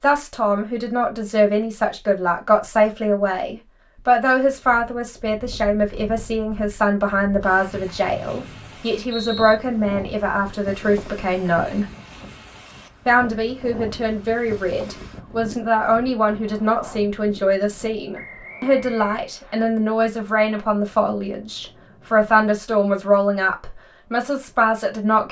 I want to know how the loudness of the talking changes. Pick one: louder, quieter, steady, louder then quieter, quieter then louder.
steady.